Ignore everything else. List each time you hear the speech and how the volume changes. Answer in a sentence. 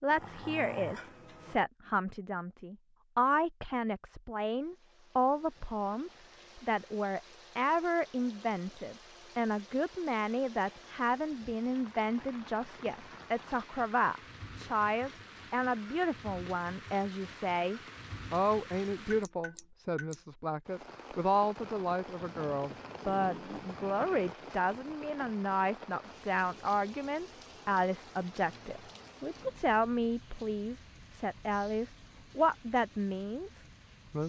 The speech can be heard from 0.0 to 34.2 s, at a steady volume.